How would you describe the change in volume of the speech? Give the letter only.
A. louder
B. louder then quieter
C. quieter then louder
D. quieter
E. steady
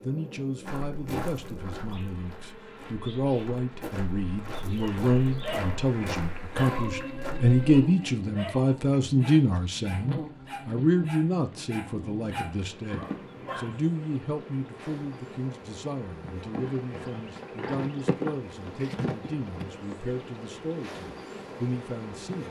B.